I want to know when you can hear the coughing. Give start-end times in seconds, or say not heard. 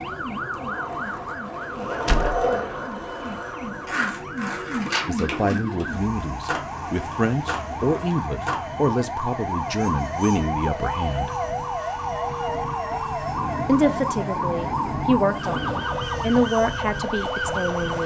not heard.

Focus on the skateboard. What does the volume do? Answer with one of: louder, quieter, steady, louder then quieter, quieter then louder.
louder then quieter.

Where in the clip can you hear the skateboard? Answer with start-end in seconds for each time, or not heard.
0.0-8.7.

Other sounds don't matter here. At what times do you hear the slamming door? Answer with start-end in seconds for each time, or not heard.
2.0-2.5.